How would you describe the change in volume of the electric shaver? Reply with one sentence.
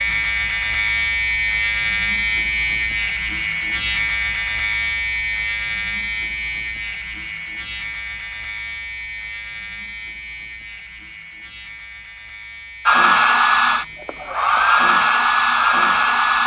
The volume of the electric shaver goes down.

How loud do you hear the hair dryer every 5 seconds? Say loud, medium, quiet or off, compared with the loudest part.
off, off, loud, loud.